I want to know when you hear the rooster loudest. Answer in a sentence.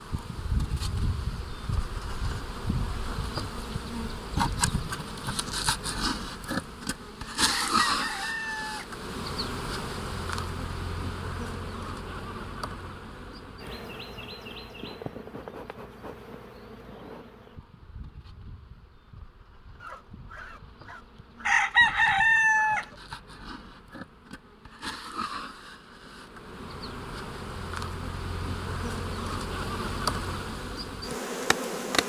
The loudest moment of the rooster is at 22 seconds.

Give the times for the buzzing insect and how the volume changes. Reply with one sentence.
You can hear the buzzing insect from 0.0 to 32.0 s, getting quieter then louder.